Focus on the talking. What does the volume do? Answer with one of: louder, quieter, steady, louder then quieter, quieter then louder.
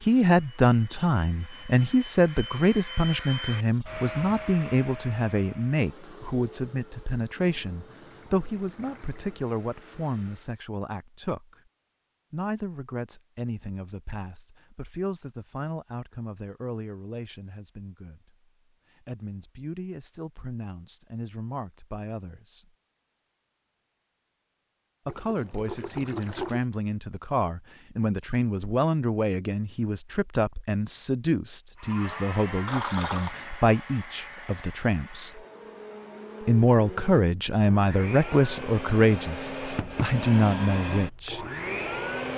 quieter then louder.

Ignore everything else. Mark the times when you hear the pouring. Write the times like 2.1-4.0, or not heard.
7.3-9.3, 25.1-26.6, 32.6-33.4.